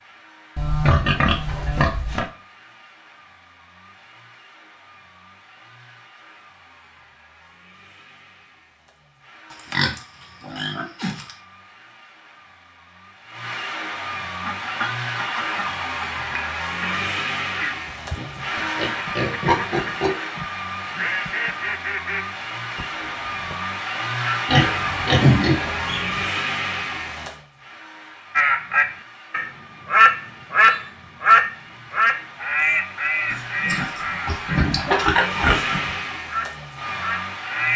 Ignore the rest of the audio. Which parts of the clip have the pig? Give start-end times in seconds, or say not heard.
0.6-2.2, 9.5-11.3, 18.1-20.1, 24.4-26.2, 33.3-36.0.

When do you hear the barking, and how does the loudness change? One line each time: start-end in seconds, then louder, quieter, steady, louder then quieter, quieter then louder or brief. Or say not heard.
not heard.